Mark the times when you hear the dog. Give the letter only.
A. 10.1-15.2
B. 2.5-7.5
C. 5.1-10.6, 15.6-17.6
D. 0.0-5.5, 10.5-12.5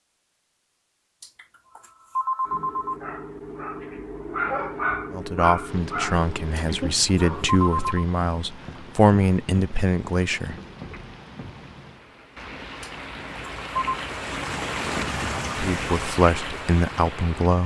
B.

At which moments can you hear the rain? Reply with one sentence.
The rain can be heard from 5.7 to 17.6 s.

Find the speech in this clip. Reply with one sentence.
The speech can be heard from 5.1 to 10.6 s and from 15.6 to 17.6 s.